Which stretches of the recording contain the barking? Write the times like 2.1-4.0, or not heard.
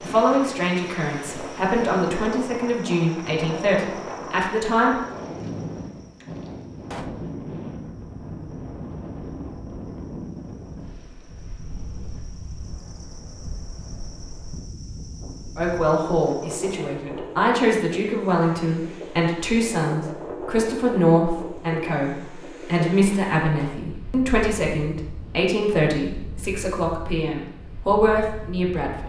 not heard.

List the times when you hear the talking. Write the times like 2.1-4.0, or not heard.
0.0-5.0, 15.6-29.0.